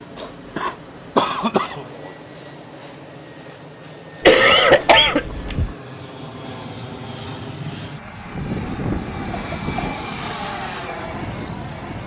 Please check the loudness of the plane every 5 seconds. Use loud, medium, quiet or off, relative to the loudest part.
medium, loud, loud.